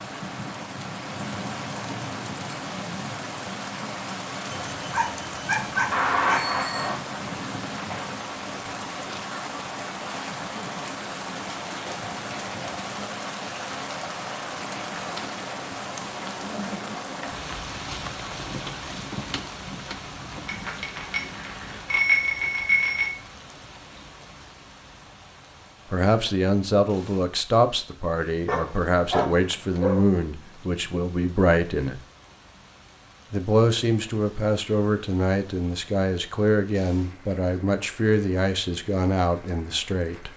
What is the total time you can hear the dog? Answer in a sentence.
You can hear the dog for 4 seconds altogether.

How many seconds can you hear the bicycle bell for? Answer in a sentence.
The bicycle bell can be heard for 4 seconds in total.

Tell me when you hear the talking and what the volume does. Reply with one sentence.
You can hear the talking from 25.9 to 32.0 s, at a steady volume; and from 33.3 to 40.3 s, at a steady volume.